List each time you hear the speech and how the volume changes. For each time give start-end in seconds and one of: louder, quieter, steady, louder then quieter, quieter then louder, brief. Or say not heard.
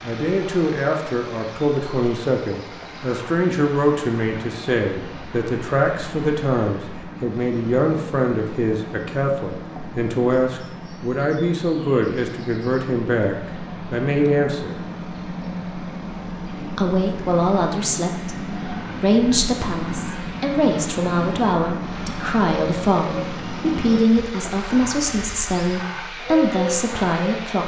0.0-14.8 steady
16.6-27.6 steady.